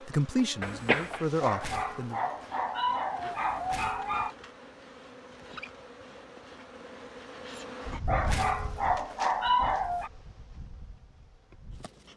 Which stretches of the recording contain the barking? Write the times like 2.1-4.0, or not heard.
1.4-4.3, 8.1-10.1.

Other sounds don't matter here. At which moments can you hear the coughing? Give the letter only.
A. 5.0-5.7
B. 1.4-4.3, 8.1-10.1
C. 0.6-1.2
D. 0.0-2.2
C.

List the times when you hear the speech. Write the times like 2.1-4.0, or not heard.
0.0-2.2.